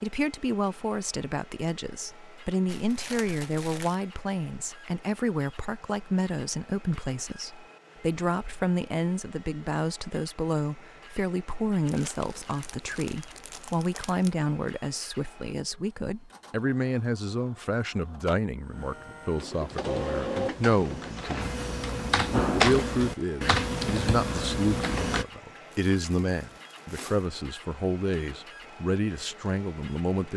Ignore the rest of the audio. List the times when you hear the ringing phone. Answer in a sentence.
The ringing phone can't be heard in this clip.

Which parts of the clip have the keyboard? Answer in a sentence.
The keyboard can be heard from 19.6 to 25.2 s.